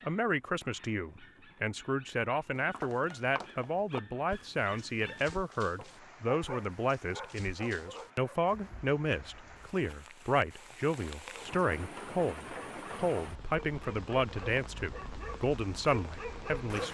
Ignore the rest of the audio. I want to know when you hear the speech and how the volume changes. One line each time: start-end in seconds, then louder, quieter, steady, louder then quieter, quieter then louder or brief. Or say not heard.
0.0-16.8 steady.